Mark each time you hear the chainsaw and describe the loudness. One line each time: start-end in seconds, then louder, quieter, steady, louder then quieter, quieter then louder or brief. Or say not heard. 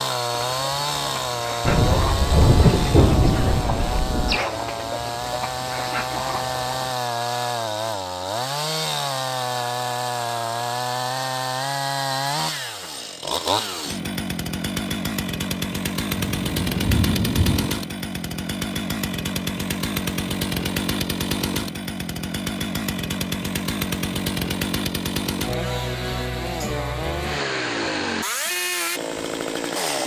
0.0-30.0 steady.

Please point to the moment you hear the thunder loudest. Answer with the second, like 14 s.
3 s.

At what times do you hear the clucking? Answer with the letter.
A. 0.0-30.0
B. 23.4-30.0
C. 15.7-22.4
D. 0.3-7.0
D.